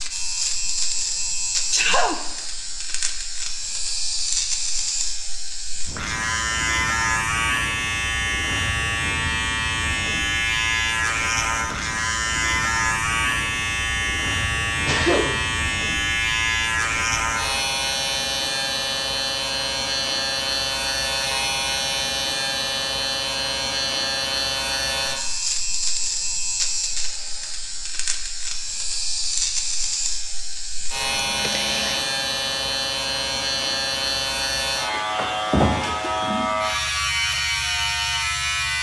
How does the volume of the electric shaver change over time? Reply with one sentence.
The loudness of the electric shaver stays about the same.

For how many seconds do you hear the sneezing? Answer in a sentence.
The sneezing can be heard for 2 seconds in total.